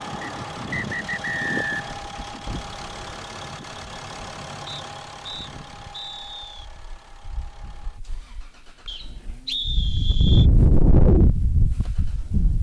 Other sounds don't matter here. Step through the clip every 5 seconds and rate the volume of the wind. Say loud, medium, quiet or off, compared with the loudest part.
quiet, quiet, loud.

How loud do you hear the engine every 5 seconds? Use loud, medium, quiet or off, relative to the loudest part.
loud, medium, quiet.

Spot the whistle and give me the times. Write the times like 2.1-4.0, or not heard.
0.2-1.9, 4.7-6.7, 8.8-10.5.